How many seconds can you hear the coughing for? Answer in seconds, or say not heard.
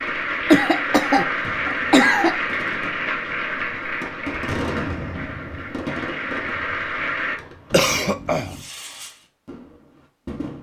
3 s.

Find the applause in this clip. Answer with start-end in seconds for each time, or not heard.
0.0-7.4.